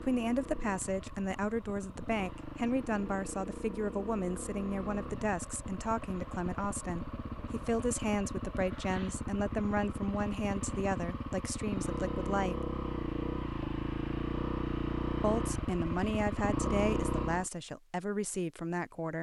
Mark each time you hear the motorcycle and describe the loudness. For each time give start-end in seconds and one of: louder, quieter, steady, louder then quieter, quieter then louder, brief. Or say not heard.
0.0-17.5 louder.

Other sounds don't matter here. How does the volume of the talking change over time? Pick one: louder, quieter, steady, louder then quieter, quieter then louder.
steady.